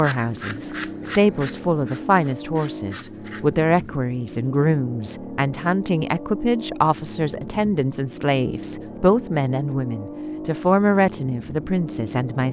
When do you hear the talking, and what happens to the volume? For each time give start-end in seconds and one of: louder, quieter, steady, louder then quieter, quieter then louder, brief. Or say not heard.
0.0-12.4 steady.